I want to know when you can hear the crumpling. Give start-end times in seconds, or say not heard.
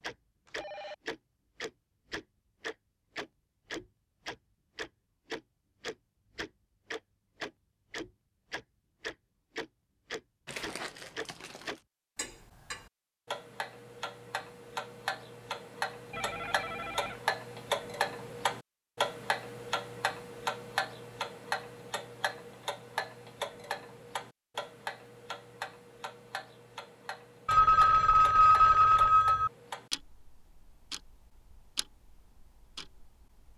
10.4-11.8.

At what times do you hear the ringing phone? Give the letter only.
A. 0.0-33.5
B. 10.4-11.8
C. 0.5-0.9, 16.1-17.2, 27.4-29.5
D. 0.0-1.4
C.